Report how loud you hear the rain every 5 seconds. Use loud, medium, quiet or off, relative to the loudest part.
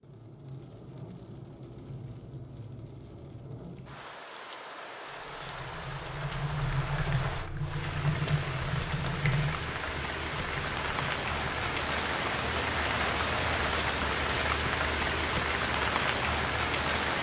quiet, medium, loud, loud.